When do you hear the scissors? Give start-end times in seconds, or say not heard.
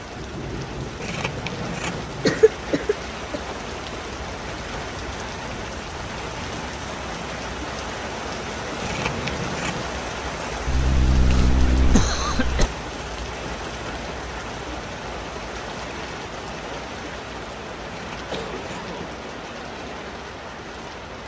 1.0-1.9, 8.8-9.8, 17.9-18.8.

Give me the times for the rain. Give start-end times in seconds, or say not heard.
0.0-21.2.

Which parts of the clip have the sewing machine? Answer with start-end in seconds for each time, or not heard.
not heard.